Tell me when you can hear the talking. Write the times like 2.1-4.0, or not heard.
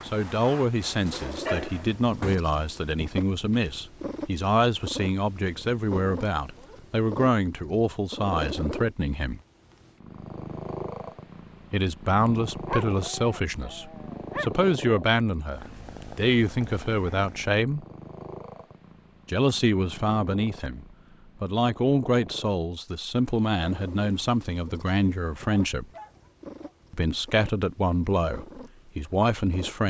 0.0-9.4, 11.7-17.9, 19.2-25.9, 26.9-29.8.